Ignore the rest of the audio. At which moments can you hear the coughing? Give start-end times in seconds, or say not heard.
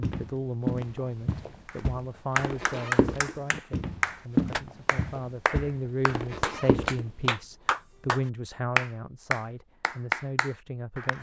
not heard.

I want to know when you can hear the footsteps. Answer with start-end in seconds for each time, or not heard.
0.0-7.3.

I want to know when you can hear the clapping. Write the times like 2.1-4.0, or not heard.
1.6-11.1.